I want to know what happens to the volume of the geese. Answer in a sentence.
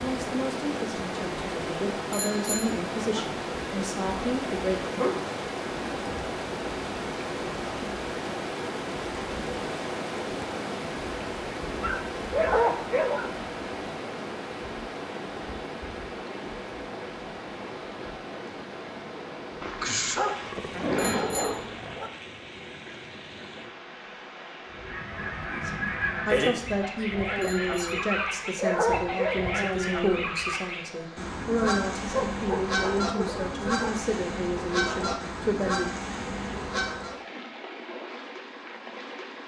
The volume of the geese stays about the same.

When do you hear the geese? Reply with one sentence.
You can hear the geese from 24.7 to 37.1 s.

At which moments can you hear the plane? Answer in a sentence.
You can't hear the plane here.